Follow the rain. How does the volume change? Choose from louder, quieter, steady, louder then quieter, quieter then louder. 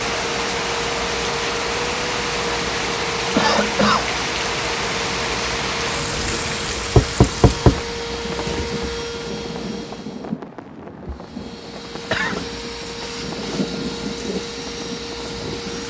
quieter.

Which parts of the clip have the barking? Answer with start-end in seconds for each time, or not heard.
not heard.